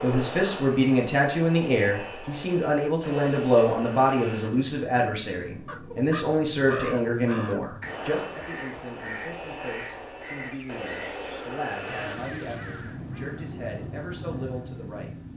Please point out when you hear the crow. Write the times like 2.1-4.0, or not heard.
5.7-13.7.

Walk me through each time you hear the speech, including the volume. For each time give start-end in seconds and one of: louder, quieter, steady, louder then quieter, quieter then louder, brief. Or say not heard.
0.0-15.1 quieter.